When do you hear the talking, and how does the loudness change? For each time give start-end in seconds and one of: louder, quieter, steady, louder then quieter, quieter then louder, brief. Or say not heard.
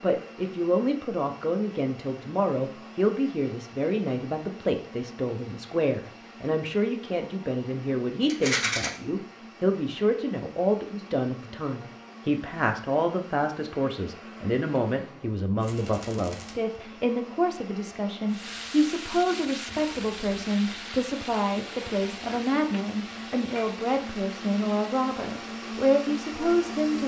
0.0-27.0 steady.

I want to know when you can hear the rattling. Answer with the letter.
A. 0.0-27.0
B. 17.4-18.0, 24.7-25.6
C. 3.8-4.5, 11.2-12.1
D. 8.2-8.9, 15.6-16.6
D.